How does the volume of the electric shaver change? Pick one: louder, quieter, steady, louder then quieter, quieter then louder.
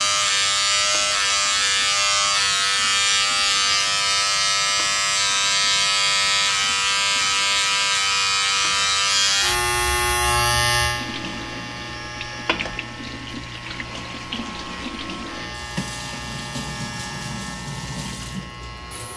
quieter.